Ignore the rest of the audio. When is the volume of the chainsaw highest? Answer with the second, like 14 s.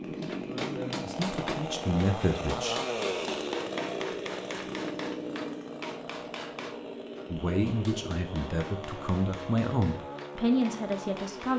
3 s.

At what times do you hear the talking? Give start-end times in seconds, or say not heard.
0.1-2.8, 7.3-11.5.